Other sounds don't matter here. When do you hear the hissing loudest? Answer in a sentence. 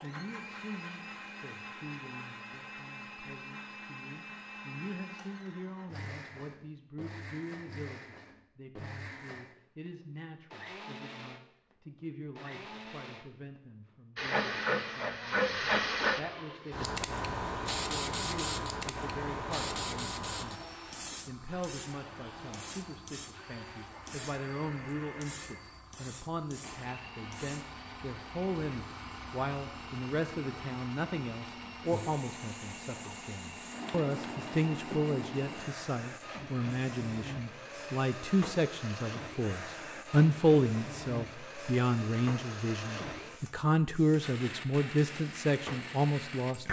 The loudest moment of the hissing is at 16 seconds.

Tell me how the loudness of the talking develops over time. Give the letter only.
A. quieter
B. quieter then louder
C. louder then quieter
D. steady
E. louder
E.